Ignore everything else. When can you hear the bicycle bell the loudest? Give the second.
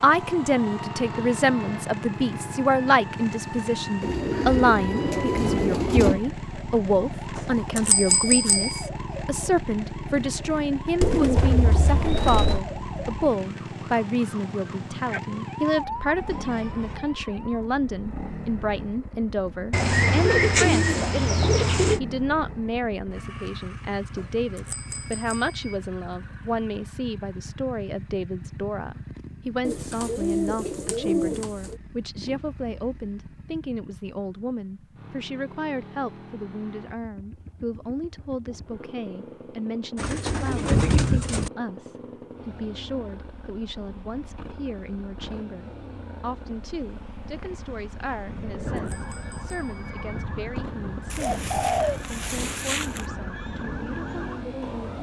8 s.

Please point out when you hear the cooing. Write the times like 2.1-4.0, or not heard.
4.0-6.2, 11.0-12.7, 19.7-22.0, 29.6-31.8, 40.0-41.5, 51.1-53.0.